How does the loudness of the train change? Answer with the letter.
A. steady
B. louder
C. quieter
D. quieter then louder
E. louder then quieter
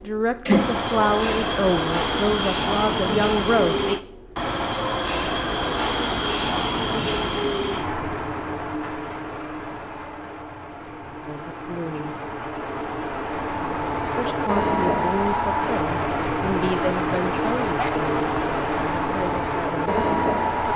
D.